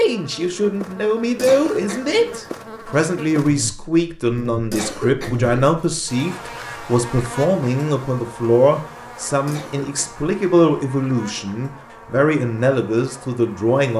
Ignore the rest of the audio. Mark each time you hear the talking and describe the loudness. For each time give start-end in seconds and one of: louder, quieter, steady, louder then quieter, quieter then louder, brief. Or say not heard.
0.0-13.9 steady.